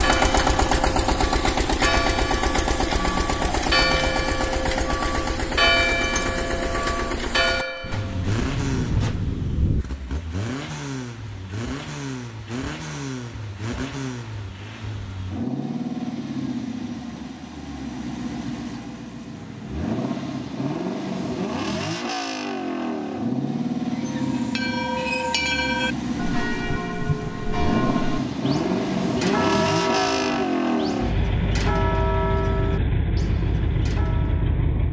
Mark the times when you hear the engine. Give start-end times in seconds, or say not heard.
0.0-34.8.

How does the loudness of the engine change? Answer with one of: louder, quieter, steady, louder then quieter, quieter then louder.
quieter then louder.